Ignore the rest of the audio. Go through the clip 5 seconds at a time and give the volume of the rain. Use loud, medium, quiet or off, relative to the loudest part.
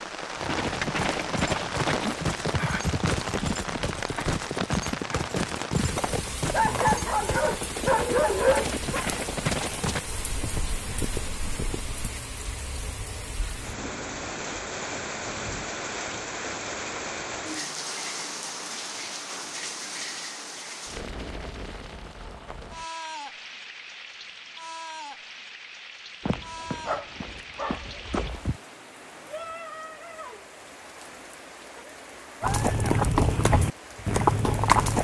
loud, loud, loud, loud, medium, medium, medium.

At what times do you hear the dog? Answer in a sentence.
The dog can be heard from 6.5 to 9.1 s and from 26.2 to 28.6 s.